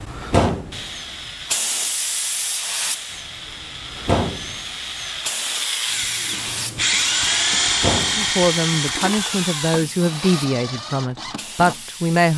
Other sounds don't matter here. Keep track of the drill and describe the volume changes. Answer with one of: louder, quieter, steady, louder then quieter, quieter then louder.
louder then quieter.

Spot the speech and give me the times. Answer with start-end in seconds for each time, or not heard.
8.2-12.3.